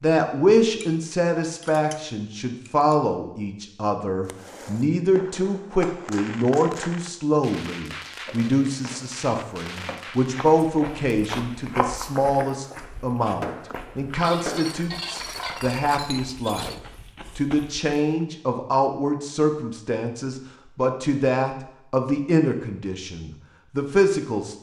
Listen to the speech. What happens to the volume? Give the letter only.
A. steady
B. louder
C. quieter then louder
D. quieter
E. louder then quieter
A.